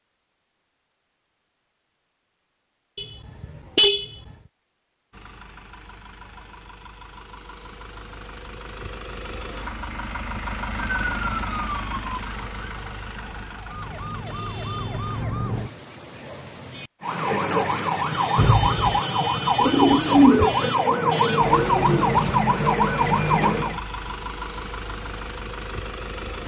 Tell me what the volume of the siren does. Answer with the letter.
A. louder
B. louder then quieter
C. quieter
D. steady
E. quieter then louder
A.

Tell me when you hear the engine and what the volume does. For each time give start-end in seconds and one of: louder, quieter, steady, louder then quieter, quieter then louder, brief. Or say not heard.
5.1-15.1 louder then quieter
21.4-26.4 steady.